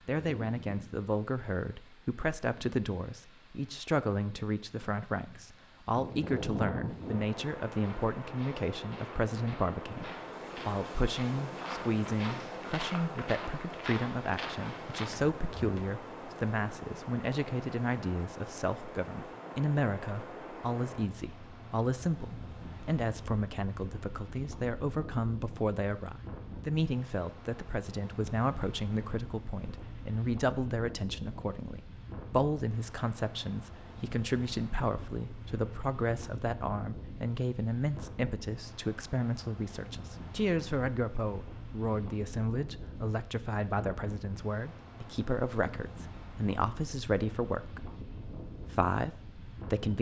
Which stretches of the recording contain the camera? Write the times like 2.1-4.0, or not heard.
not heard.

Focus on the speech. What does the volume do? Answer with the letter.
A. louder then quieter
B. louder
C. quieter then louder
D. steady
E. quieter
D.